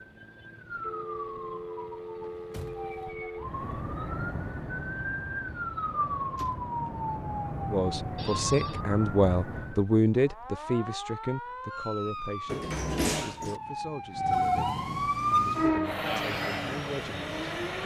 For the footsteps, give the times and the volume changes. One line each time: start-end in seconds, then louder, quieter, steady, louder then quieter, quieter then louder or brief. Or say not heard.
not heard.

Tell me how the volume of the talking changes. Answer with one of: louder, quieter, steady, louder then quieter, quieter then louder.
quieter.